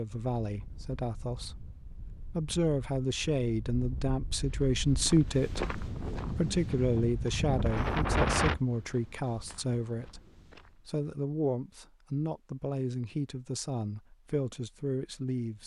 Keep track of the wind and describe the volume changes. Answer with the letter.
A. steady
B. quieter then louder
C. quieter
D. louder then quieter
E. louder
E.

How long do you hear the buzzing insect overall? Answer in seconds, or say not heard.
not heard.